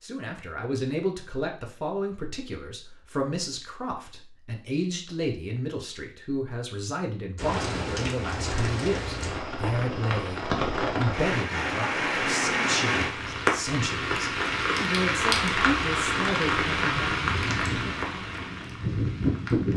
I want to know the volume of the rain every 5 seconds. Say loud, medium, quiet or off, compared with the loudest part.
off, medium, loud, loud.